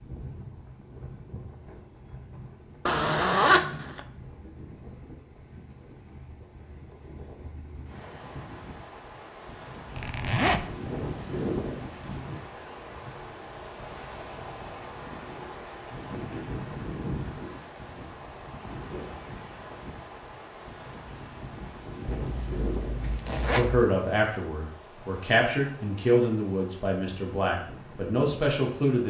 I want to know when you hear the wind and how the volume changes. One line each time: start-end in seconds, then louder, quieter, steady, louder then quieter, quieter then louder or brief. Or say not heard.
0.0-29.0 louder then quieter.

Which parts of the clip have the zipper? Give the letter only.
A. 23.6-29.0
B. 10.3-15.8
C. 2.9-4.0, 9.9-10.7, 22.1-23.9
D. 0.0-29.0
C.